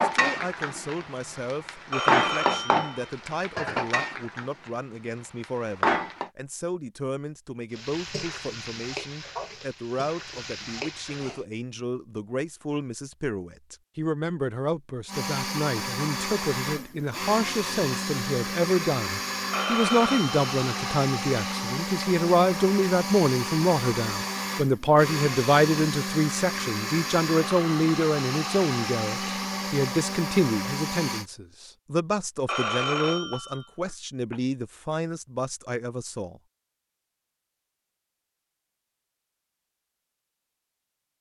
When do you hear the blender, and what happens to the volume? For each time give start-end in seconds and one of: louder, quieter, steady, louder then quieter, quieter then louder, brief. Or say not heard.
15.1-31.2 steady.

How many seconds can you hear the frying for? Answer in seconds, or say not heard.
10 s.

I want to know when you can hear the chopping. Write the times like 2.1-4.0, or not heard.
not heard.